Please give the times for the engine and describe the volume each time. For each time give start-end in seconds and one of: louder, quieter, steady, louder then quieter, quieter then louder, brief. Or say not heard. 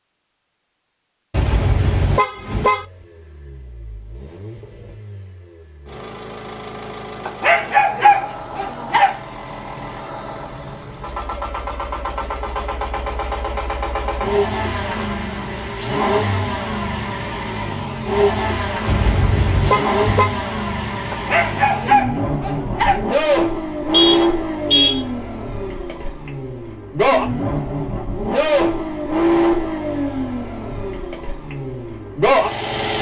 2.6-32.9 louder.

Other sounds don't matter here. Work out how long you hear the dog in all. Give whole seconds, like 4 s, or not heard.
4 s.